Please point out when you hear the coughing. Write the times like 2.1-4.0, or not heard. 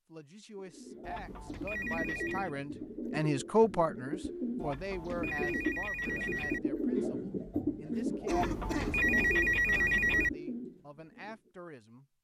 8.2-9.0.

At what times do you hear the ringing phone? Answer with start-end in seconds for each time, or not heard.
1.0-2.5, 4.5-6.6, 8.3-10.3.